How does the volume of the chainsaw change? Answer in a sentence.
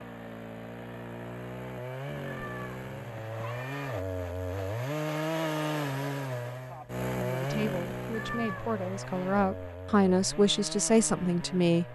The volume of the chainsaw goes up, then down.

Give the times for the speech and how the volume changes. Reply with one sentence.
The speech can be heard from 7.2 to 11.8 s, getting louder.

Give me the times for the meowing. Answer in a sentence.
The meowing can be heard from 2.2 to 4.0 s and from 8.1 to 8.8 s.